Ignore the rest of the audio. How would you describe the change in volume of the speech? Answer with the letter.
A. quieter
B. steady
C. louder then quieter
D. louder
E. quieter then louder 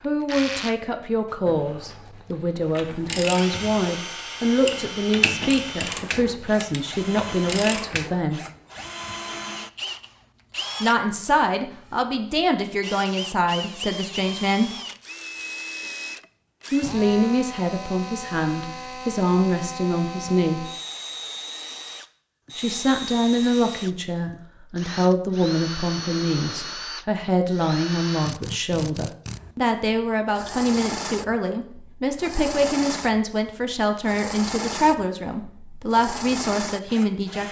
B.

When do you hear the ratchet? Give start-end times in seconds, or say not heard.
2.6-8.1.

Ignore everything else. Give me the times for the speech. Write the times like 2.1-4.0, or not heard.
0.0-8.4, 10.8-14.7, 16.7-20.6, 22.6-37.4.